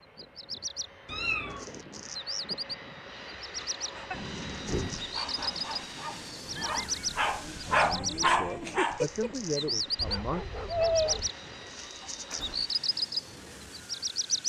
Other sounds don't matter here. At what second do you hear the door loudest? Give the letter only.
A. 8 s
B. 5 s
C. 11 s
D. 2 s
B.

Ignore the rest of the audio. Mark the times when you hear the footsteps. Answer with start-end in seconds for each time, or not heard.
not heard.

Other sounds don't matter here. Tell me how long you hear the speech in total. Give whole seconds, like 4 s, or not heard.
3 s.